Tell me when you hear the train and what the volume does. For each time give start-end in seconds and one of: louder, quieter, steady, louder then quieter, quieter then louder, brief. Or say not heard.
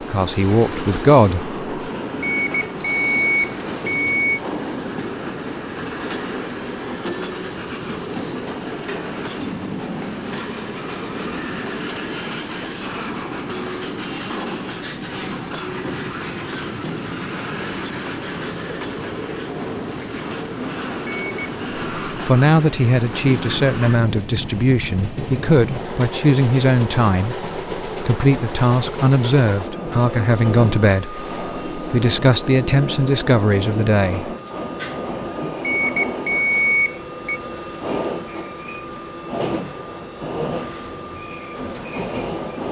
0.0-42.6 steady.